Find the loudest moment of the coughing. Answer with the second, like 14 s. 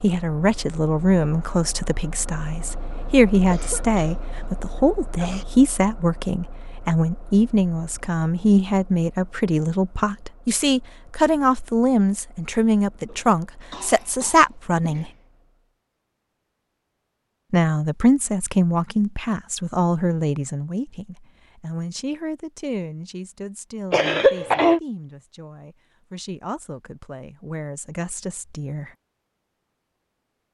24 s.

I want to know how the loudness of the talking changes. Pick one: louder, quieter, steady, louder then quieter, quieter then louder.
quieter.